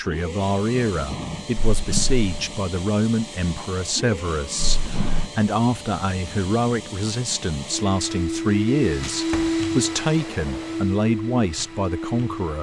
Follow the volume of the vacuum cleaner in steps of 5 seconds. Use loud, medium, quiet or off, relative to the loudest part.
medium, loud, loud.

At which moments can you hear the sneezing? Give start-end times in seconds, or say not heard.
not heard.